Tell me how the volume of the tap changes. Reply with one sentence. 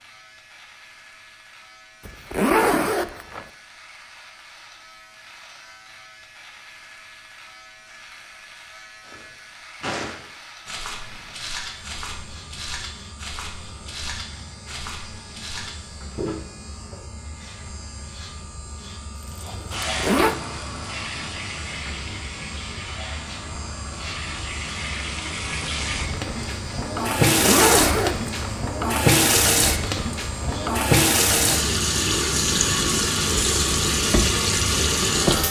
The loudness of the tap goes up.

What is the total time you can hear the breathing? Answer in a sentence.
You can't hear the breathing here.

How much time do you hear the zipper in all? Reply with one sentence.
You can hear the zipper for 3 seconds altogether.